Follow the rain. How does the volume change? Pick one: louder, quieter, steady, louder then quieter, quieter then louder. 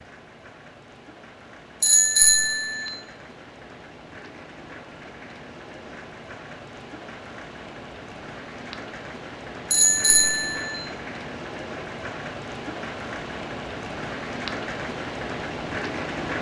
louder.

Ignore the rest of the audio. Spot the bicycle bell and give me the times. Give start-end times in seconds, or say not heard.
1.8-2.9, 9.7-10.8.